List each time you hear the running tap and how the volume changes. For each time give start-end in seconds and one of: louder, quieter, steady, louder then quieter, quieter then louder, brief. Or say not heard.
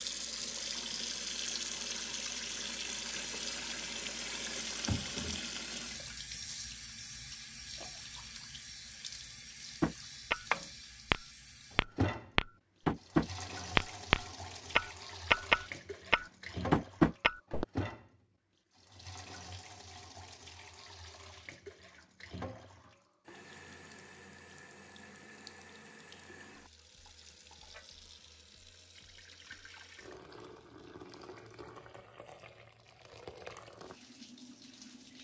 0.0-35.1 quieter.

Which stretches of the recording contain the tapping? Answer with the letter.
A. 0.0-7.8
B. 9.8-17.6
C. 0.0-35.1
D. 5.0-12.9
B.